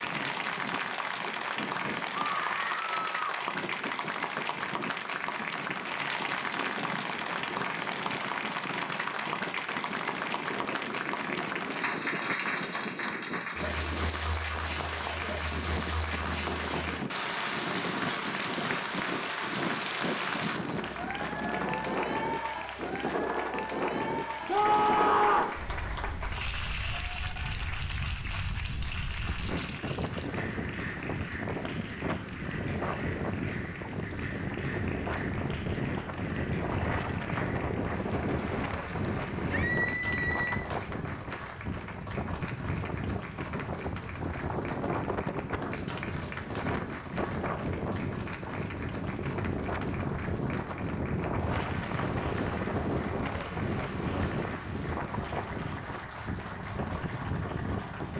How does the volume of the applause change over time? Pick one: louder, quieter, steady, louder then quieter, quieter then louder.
quieter.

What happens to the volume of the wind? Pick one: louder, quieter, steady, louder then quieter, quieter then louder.
louder.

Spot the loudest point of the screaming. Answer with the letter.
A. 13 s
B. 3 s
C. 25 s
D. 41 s
C.